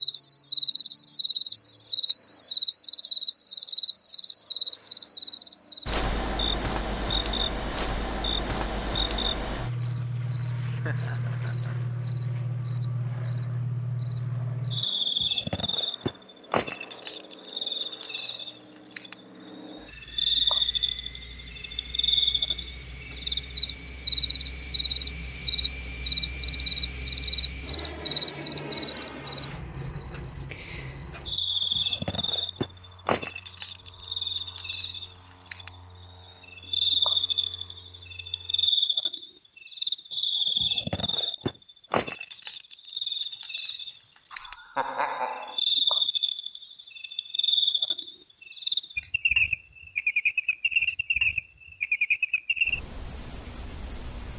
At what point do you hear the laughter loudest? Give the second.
45 s.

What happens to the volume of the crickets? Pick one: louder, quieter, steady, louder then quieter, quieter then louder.
steady.